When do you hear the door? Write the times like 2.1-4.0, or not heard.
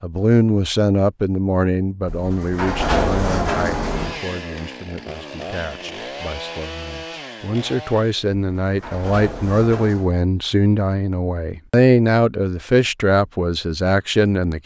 2.0-4.2, 8.5-10.1.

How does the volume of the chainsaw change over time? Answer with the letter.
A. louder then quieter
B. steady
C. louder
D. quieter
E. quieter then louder
B.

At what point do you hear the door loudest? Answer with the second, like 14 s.
3 s.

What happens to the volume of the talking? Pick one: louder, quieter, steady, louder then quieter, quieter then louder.
quieter then louder.